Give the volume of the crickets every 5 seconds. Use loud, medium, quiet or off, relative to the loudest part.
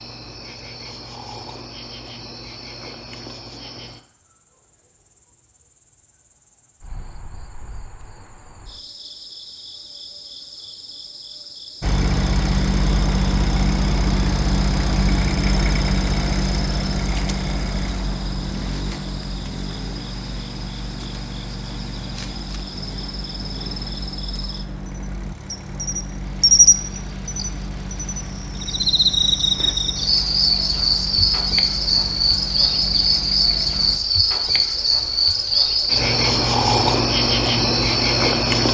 quiet, quiet, quiet, quiet, quiet, loud, loud, loud.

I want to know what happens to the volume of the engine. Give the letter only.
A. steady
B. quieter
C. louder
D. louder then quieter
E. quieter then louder
B.